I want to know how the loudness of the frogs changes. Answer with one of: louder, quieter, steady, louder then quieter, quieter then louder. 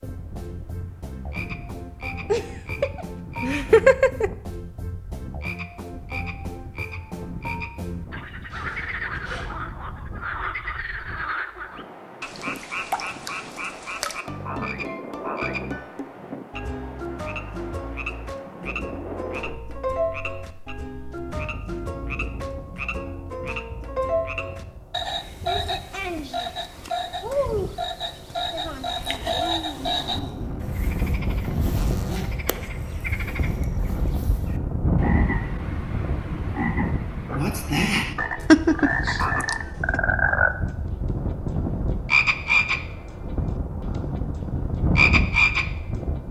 louder.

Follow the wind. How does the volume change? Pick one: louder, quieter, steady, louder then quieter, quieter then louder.
louder.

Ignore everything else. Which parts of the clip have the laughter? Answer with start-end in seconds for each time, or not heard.
2.3-4.3, 38.5-40.0.